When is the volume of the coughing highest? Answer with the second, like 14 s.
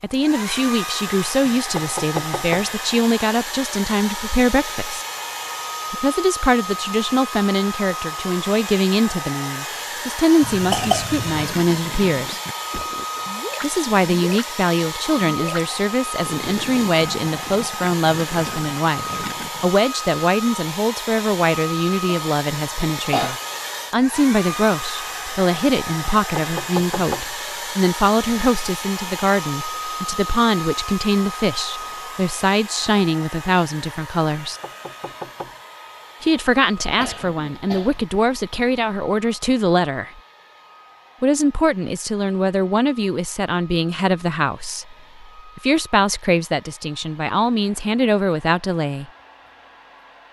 11 s.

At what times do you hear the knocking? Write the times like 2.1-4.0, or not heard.
1.4-2.6, 26.1-27.2, 34.4-35.5.